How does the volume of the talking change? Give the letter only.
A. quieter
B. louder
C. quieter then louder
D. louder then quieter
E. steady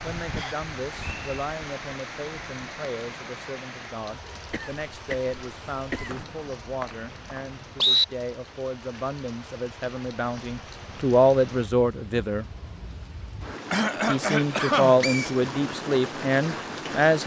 B.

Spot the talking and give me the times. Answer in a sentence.
The talking can be heard from 0.0 to 12.4 s and from 14.1 to 17.2 s.